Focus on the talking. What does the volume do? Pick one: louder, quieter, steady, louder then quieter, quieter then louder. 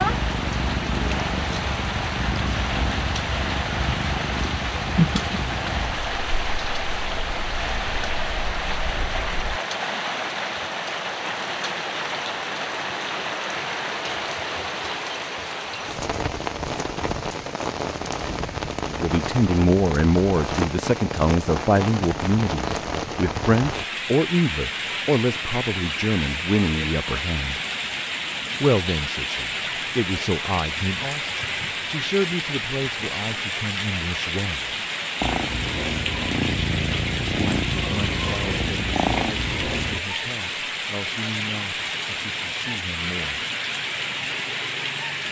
quieter.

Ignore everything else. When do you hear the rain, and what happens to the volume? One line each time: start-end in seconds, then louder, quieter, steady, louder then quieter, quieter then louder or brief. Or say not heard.
0.0-45.2 steady.